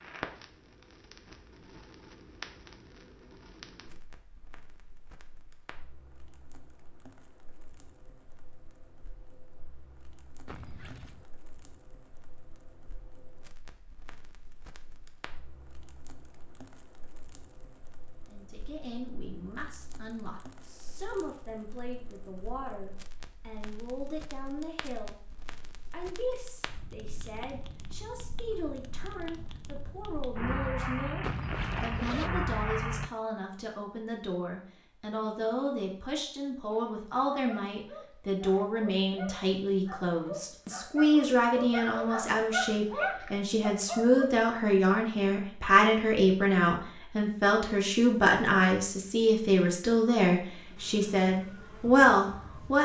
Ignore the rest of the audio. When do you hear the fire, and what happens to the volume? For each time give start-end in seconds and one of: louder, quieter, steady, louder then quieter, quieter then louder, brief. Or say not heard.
0.0-33.1 quieter then louder.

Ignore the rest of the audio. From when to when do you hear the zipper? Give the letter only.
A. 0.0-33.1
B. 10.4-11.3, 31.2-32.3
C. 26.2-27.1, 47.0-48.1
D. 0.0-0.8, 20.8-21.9
B.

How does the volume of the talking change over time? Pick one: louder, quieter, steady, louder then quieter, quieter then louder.
louder.